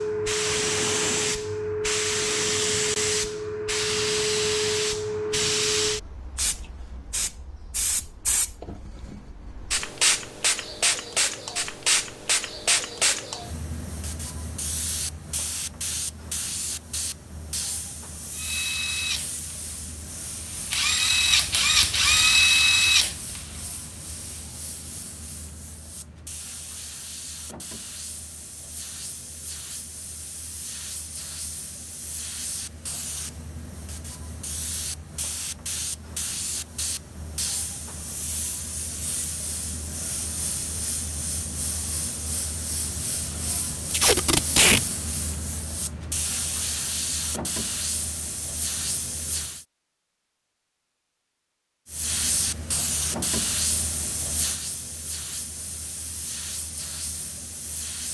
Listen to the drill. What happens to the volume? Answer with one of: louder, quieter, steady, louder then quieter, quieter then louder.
louder then quieter.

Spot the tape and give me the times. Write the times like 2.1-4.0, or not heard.
43.9-44.8.